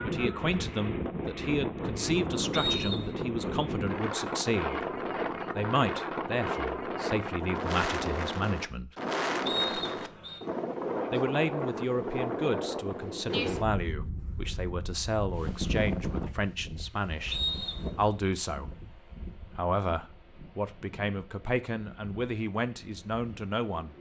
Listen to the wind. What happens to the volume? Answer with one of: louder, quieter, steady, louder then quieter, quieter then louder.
quieter.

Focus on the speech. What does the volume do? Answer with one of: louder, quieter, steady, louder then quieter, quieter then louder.
steady.